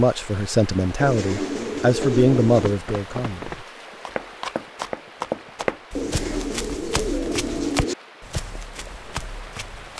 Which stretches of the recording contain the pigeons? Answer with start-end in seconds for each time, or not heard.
1.0-2.8, 6.0-8.0.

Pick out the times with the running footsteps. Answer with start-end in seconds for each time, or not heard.
2.5-9.9.